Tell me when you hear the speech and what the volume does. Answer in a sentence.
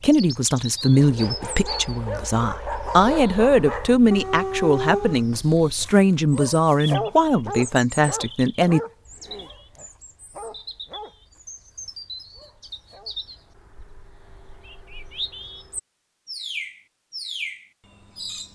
The speech can be heard from 0.0 to 8.8 s, at a steady volume.